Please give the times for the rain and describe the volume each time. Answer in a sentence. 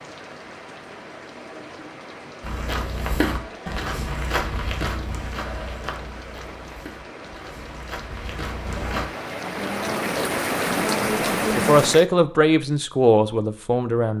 You can hear the rain from 0.0 to 12.1 s, getting louder.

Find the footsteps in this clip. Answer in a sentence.
The footsteps can be heard from 2.4 to 9.1 s.